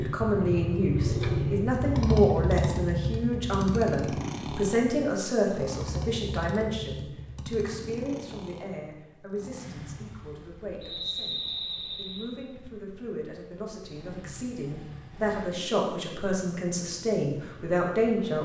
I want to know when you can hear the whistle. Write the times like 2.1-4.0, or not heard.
10.8-12.3.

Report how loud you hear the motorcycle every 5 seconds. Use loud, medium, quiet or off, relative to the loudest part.
loud, medium, quiet, quiet.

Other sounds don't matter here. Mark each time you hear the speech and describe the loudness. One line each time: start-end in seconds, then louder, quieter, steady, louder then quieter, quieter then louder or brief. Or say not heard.
0.0-18.4 quieter then louder.